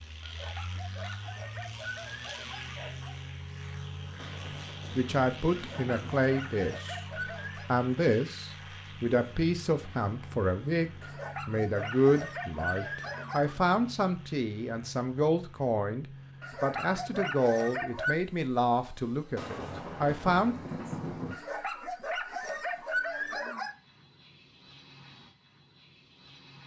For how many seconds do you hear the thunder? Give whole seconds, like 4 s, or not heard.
4 s.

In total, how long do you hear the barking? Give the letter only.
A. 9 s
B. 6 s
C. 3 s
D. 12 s
D.